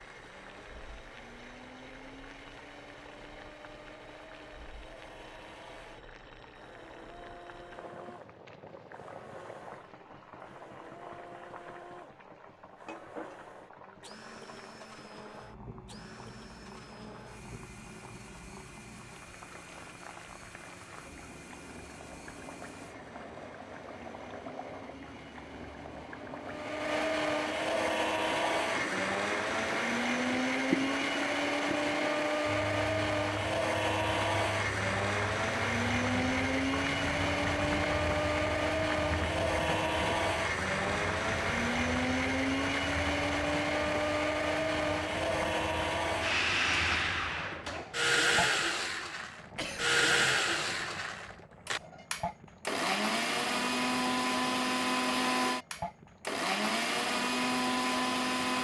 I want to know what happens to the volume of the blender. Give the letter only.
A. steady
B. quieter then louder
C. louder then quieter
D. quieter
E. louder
E.